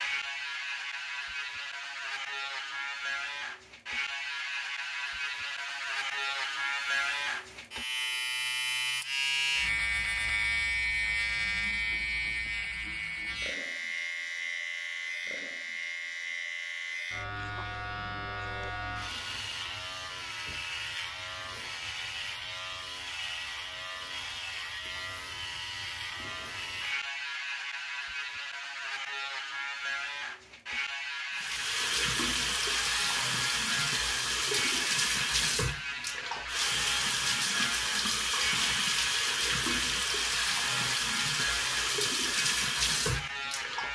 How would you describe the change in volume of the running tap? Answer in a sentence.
The volume of the running tap stays about the same.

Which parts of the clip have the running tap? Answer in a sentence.
You can hear the running tap from 31.3 to 43.9 s.